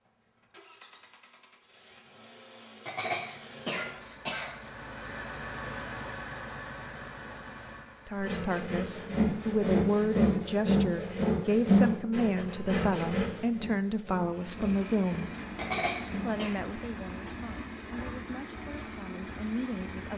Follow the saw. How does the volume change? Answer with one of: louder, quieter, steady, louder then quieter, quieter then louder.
quieter.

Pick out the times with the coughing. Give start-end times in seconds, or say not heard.
2.9-4.7, 15.6-16.6.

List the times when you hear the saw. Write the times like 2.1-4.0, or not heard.
8.2-16.4.